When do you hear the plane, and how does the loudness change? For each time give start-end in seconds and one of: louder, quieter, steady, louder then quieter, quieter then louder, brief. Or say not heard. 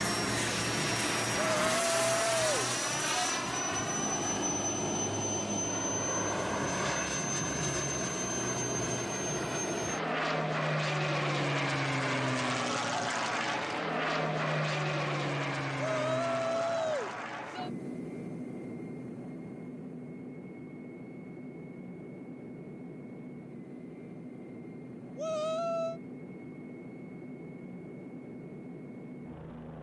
0.0-29.7 quieter.